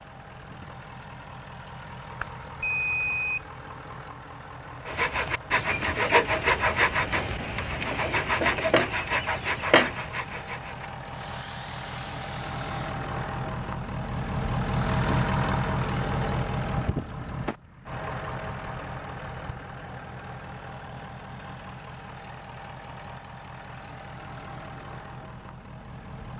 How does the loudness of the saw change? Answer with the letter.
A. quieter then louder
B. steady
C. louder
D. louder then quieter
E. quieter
E.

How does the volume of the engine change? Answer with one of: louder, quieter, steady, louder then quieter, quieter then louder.
louder then quieter.